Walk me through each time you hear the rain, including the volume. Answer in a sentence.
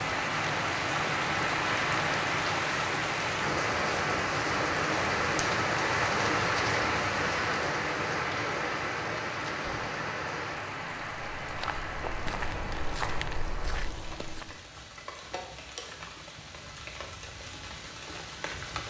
The rain can be heard from 0.0 to 18.8 s, getting quieter.